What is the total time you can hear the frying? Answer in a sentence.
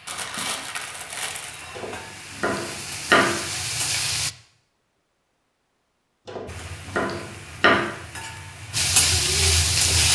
You can hear the frying for 8 seconds altogether.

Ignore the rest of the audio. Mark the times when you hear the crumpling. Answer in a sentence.
The crumpling can be heard from 0.1 to 1.6 s.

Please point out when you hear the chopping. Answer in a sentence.
The chopping can be heard from 1.8 to 3.4 s and from 6.2 to 7.8 s.